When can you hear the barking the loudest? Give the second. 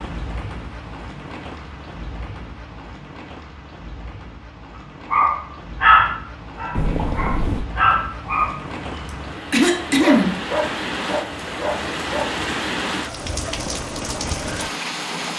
6 s.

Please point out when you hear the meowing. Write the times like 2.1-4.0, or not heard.
6.8-7.7.